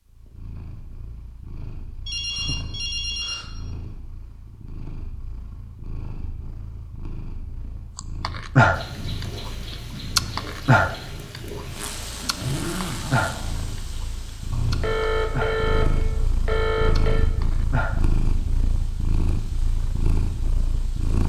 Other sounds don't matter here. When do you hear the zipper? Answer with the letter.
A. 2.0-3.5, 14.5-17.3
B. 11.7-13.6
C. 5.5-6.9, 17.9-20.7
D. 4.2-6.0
B.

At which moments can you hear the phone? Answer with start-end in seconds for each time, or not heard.
2.0-3.5, 14.5-17.3.